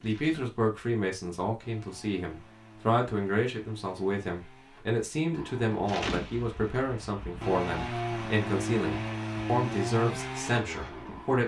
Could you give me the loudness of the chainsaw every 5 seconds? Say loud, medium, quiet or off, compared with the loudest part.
quiet, loud, loud.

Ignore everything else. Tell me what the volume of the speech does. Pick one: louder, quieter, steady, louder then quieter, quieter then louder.
steady.